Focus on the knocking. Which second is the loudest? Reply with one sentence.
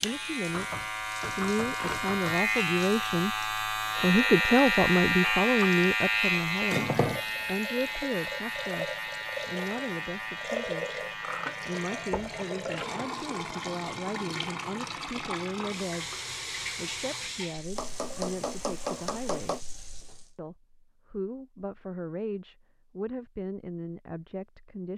The volume of the knocking peaks at 19 seconds.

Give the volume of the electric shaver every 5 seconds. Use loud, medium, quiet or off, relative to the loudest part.
loud, loud, medium, off, off.